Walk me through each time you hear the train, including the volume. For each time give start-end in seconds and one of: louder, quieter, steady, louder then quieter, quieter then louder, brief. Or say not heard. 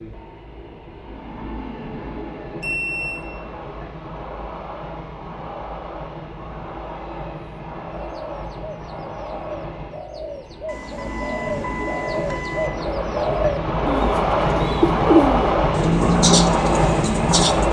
0.0-17.6 louder.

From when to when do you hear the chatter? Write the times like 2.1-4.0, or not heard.
not heard.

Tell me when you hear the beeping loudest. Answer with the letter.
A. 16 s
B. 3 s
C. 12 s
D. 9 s
B.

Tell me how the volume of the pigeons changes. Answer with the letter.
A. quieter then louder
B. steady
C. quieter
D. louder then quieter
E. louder
E.